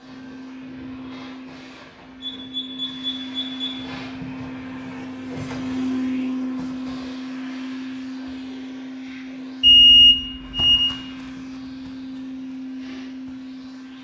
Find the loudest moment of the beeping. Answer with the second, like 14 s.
10 s.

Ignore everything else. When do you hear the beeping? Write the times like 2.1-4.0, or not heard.
2.2-3.9, 9.6-10.9.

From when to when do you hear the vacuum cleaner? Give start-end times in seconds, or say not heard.
0.0-13.9.